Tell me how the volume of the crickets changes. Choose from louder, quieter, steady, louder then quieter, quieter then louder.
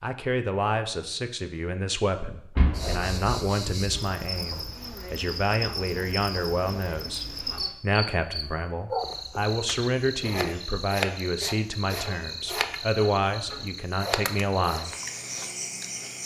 steady.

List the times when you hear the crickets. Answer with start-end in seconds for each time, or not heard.
2.7-16.2.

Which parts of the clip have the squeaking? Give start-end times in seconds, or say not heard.
2.5-3.1, 7.2-7.8, 11.8-13.7.